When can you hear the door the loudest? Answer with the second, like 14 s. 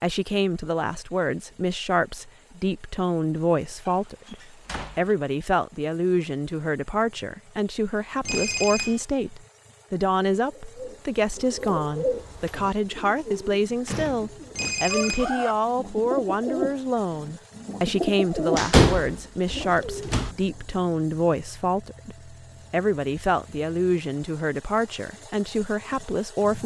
19 s.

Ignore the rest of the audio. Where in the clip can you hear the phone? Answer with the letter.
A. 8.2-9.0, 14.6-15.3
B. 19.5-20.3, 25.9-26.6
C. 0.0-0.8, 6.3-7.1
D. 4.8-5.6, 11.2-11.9
A.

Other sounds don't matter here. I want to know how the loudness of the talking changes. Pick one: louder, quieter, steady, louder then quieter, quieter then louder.
steady.